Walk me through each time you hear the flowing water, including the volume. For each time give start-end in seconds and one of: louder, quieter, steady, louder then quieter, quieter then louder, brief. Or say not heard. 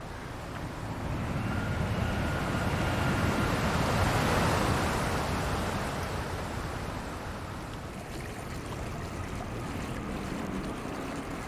0.0-11.4 louder then quieter.